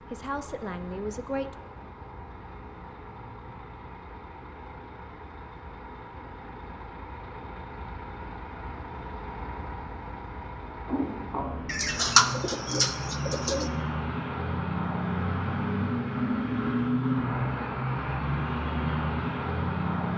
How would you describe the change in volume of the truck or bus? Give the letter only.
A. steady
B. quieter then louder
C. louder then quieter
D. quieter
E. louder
E.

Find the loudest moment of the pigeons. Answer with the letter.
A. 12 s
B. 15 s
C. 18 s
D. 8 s
A.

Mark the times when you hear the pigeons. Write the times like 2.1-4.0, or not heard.
11.7-13.7.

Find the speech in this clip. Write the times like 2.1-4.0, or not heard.
0.0-1.6.